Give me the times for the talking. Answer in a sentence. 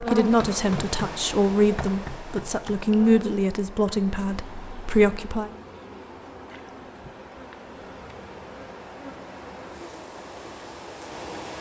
You can hear the talking from 0.0 to 5.5 s.